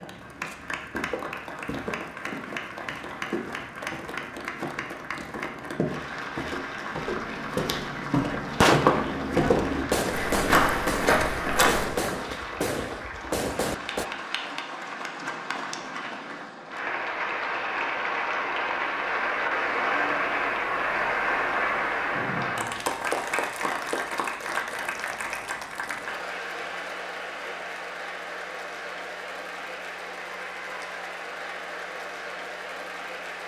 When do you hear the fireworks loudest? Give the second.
9 s.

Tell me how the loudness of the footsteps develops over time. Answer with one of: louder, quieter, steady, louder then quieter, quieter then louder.
louder.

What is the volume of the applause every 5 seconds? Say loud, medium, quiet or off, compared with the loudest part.
medium, medium, medium, loud, loud, medium, medium.